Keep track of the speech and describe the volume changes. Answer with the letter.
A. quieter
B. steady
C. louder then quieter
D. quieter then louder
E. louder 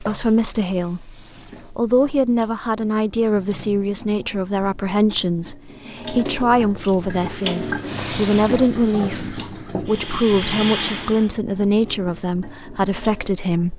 B.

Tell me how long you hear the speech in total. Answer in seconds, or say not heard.
14 s.